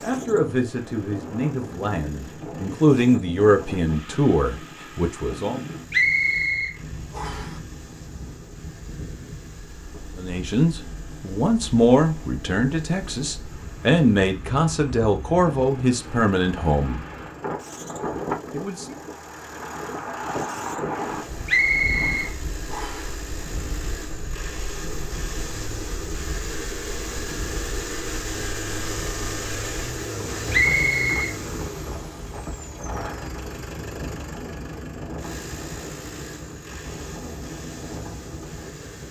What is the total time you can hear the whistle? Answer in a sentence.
You can hear the whistle for 4 seconds altogether.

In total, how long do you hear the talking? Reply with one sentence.
You can hear the talking for 13 seconds altogether.